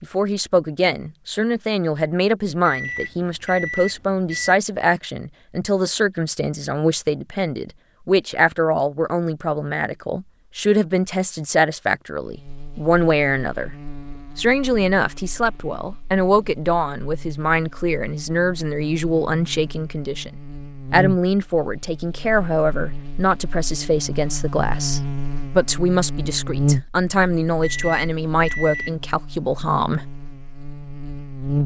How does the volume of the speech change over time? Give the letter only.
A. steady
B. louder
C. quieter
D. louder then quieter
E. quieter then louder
A.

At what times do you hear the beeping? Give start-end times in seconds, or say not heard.
2.6-4.5, 27.6-28.9.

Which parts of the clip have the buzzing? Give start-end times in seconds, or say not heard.
12.2-31.6.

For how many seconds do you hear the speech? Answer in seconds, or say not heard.
29 s.